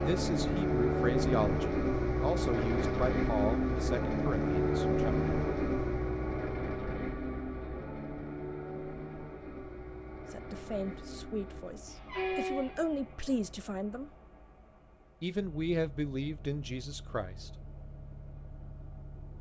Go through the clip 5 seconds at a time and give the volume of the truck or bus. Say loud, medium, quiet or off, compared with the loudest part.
loud, medium, quiet, quiet.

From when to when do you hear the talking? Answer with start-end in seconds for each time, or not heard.
0.0-5.3, 10.3-14.1, 15.2-17.5.